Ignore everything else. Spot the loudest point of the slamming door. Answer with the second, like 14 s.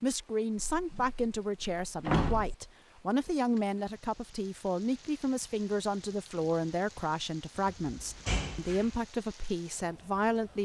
2 s.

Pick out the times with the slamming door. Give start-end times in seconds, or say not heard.
0.6-2.5, 7.5-9.0.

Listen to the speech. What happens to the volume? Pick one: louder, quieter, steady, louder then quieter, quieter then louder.
steady.